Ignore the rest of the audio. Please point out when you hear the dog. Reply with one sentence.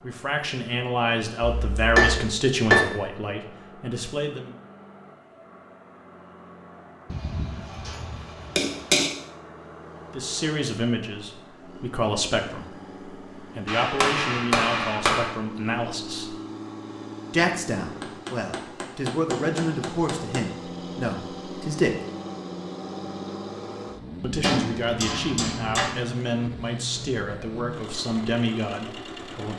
The dog can't be heard in this clip.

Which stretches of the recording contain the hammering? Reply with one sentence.
The hammering can be heard from 1.4 to 2.9 s, from 7.1 to 9.1 s, from 13.7 to 15.3 s, from 18.0 to 20.4 s and from 24.4 to 25.9 s.